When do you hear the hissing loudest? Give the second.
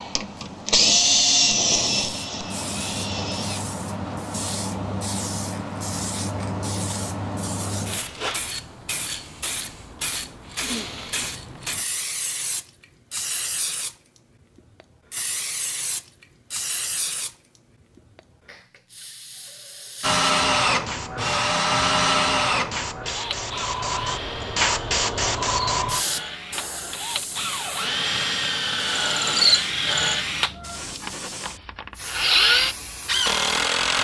25 s.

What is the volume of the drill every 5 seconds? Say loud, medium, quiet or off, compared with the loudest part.
loud, off, off, off, loud, loud, loud.